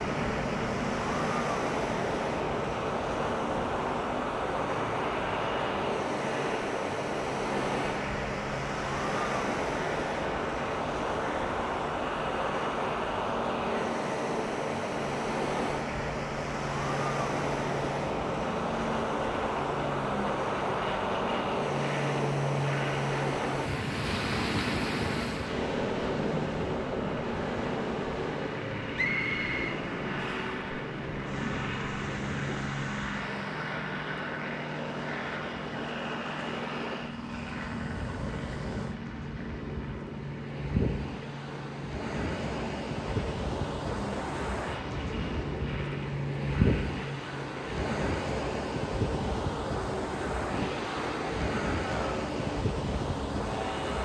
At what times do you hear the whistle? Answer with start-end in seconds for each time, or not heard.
28.9-30.6.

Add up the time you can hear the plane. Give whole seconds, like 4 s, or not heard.
54 s.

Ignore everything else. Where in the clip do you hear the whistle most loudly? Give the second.
29 s.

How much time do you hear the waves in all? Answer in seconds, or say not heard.
54 s.